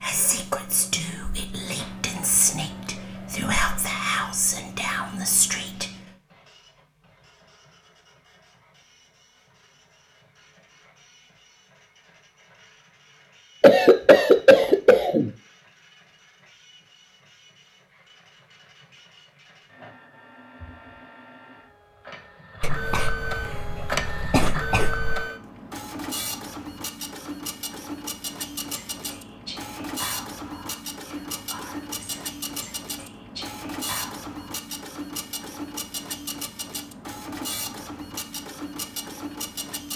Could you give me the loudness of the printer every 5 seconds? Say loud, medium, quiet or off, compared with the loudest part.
quiet, quiet, quiet, quiet, loud, loud, loud, loud.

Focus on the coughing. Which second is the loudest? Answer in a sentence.
The volume of the coughing peaks at 14 seconds.